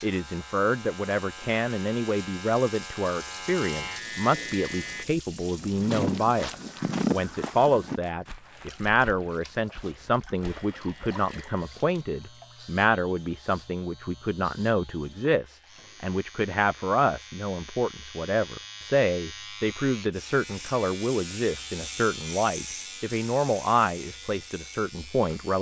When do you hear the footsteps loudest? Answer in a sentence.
The volume of the footsteps peaks at 7 seconds.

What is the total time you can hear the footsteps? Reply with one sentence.
You can hear the footsteps for 6 seconds altogether.